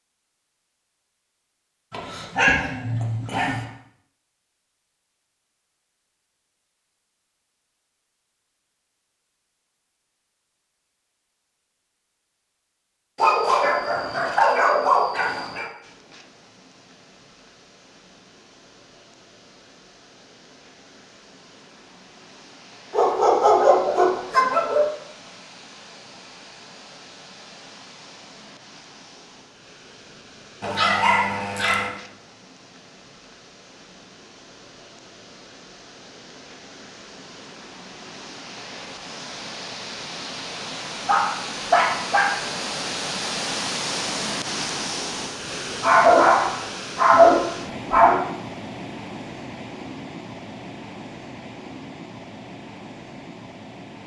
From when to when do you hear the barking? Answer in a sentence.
The barking can be heard from 1.9 to 3.6 s, from 13.2 to 15.7 s, from 22.9 to 24.9 s, from 30.6 to 31.9 s, from 41.0 to 42.5 s and from 45.8 to 48.2 s.